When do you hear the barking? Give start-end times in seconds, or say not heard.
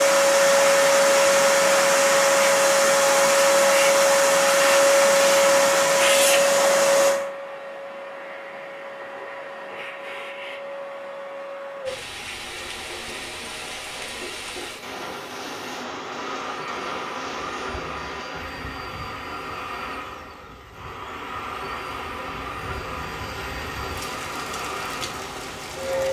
not heard.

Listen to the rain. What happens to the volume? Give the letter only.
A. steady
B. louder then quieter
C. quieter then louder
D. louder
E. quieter
C.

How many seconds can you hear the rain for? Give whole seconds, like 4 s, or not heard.
14 s.